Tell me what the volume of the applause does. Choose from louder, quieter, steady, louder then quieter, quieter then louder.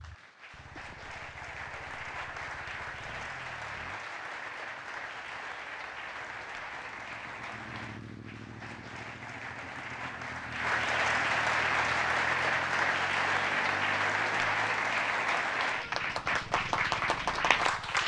louder.